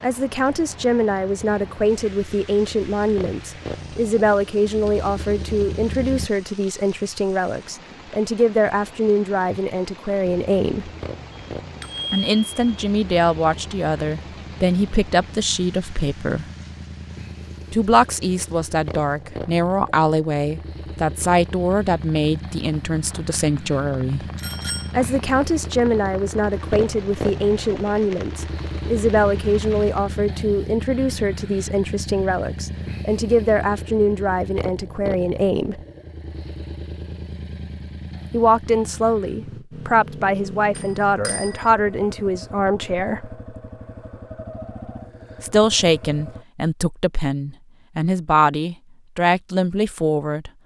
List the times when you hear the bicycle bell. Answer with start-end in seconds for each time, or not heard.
11.3-12.8, 24.4-24.9, 40.8-41.7.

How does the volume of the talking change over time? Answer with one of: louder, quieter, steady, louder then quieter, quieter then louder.
steady.